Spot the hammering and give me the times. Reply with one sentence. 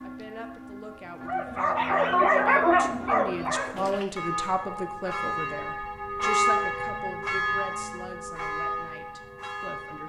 The hammering can't be heard in this clip.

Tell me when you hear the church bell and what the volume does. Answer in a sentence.
You can hear the church bell from 0.0 to 10.0 s, getting louder then quieter.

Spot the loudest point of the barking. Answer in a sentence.
The volume of the barking peaks at 3 seconds.